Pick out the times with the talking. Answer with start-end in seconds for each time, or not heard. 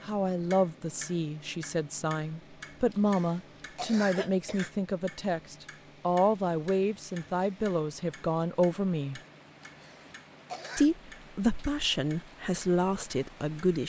0.1-9.2, 10.8-13.8.